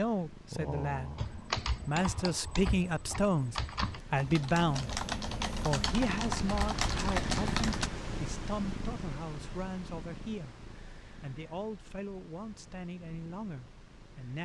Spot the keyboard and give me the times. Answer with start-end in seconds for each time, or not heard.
1.1-7.9.